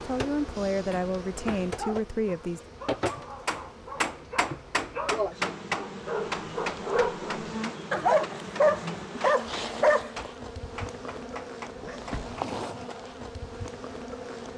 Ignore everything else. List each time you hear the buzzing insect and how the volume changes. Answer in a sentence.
You can hear the buzzing insect from 0.0 to 14.5 s, at a steady volume.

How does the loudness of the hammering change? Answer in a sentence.
The loudness of the hammering goes down.